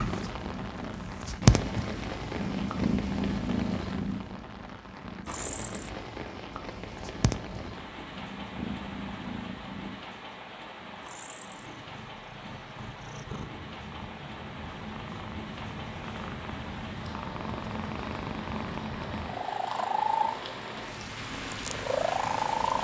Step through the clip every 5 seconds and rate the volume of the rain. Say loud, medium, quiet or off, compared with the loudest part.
loud, loud, medium, loud, loud.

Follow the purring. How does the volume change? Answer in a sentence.
The loudness of the purring goes down, then up.